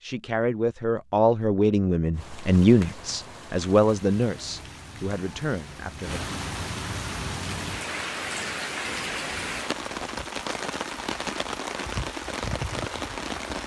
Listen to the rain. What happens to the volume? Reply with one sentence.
The volume of the rain goes up.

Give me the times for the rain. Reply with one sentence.
You can hear the rain from 2.1 to 13.6 s.